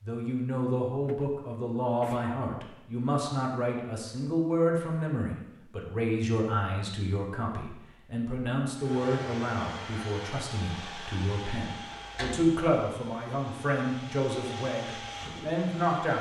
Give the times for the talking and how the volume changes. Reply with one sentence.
The talking can be heard from 0.0 to 16.1 s, at a steady volume.